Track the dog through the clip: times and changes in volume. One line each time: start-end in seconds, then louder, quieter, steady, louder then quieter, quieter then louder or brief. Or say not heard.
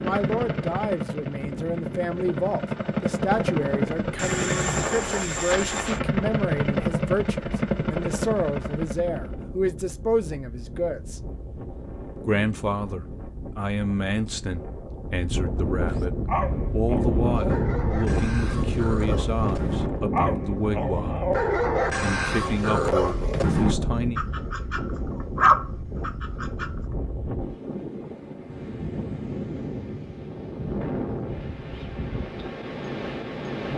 16.2-26.7 louder.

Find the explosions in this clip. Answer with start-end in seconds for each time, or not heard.
23.6-24.4.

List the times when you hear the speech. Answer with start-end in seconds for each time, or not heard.
0.0-11.2, 12.2-21.2, 22.0-24.2.